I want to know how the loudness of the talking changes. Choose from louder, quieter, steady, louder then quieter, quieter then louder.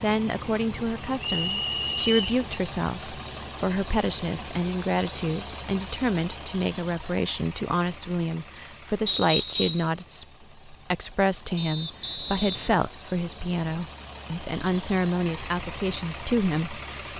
steady.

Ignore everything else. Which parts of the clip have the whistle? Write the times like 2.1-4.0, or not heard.
1.2-2.4, 9.1-9.9, 11.6-12.8.